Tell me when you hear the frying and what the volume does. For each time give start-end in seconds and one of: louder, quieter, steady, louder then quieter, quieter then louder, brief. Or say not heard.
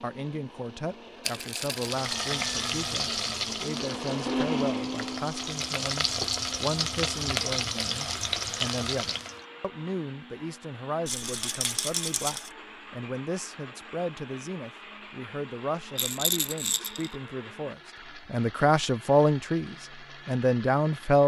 1.7-9.4 quieter then louder.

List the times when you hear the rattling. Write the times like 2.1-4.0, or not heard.
1.2-2.0, 11.1-12.5, 15.9-17.1.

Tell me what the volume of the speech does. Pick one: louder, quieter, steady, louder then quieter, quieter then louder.
louder.